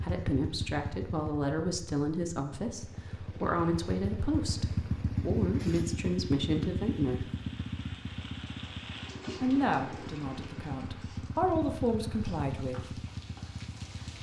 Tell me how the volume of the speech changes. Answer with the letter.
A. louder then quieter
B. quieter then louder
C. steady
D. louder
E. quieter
C.